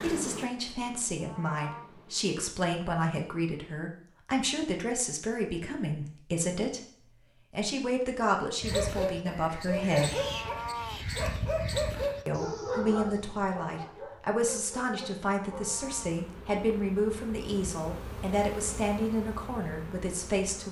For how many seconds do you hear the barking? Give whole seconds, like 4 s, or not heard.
7 s.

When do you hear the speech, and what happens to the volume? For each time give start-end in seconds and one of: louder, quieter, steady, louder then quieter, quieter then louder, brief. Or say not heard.
0.0-6.8 steady
7.5-10.2 brief
12.2-20.6 steady.